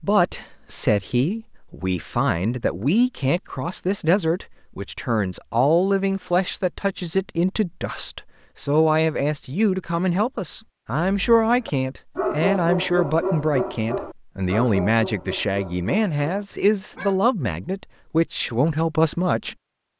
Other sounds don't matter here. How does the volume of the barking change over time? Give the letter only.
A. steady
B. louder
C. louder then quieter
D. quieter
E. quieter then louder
D.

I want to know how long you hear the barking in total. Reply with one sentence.
You can hear the barking for 6 seconds altogether.